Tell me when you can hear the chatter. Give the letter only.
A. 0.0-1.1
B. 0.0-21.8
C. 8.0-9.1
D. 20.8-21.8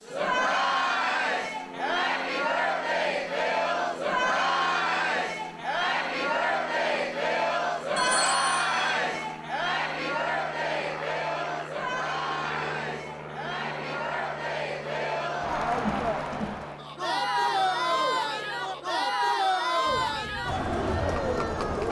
B.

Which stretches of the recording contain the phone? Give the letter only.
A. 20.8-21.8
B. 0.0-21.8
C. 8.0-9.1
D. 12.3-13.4
C.